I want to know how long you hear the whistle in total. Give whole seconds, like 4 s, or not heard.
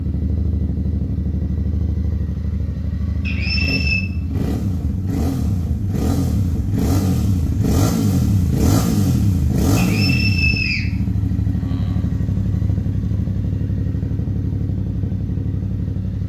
2 s.